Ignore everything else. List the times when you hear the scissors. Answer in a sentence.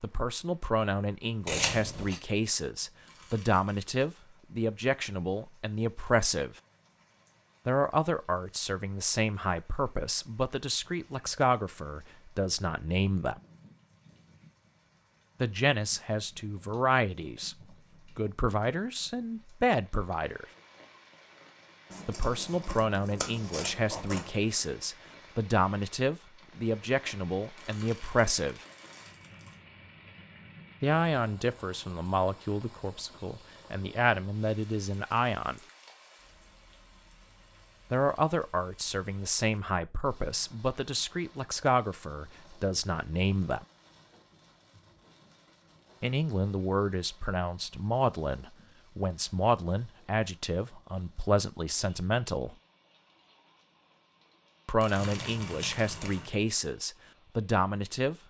The scissors can be heard from 1.4 to 2.2 s, from 21.9 to 24.4 s and from 55.0 to 56.4 s.